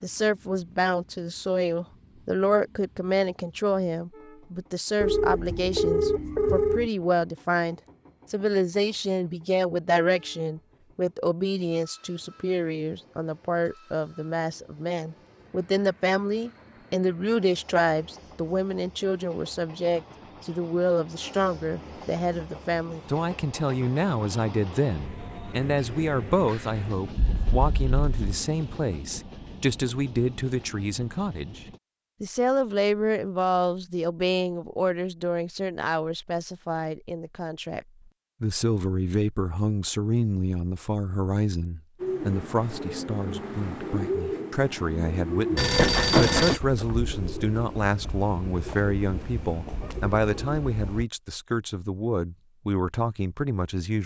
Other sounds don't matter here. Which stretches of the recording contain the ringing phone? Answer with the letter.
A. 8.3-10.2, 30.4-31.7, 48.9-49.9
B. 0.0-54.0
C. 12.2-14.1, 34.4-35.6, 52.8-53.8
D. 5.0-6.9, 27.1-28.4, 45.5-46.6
D.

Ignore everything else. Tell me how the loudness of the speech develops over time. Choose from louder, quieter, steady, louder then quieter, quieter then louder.
steady.